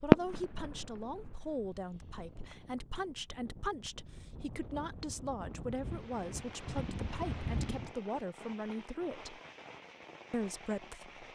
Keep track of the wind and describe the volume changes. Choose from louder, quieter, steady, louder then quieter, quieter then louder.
louder.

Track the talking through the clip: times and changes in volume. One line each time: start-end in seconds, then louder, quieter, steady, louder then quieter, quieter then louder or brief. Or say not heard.
0.0-9.4 steady
10.3-11.2 brief.